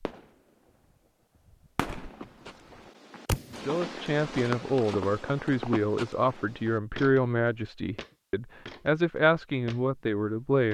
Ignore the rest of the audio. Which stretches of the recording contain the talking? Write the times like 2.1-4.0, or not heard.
3.6-10.6.